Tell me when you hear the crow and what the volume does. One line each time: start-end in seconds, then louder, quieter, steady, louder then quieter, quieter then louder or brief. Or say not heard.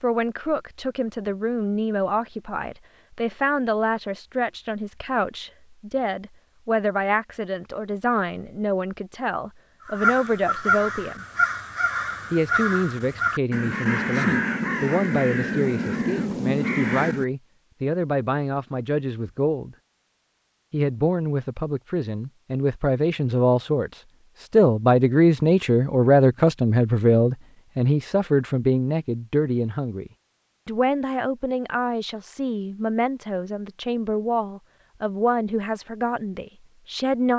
9.8-17.2 steady.